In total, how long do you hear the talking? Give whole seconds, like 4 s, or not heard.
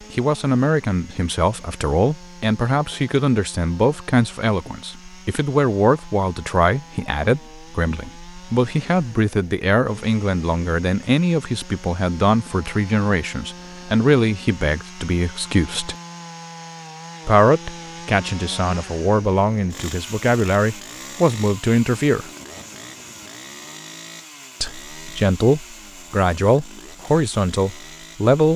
25 s.